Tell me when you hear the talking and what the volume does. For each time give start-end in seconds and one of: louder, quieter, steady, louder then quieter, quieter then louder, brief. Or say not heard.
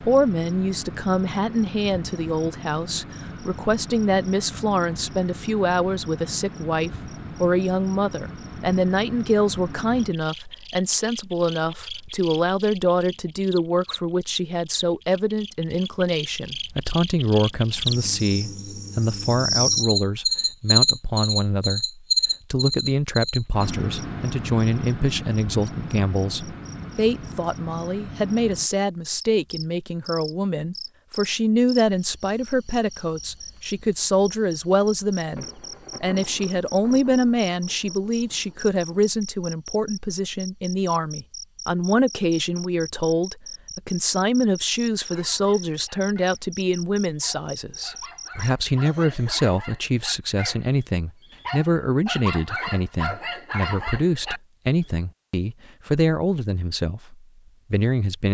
0.0-58.2 steady.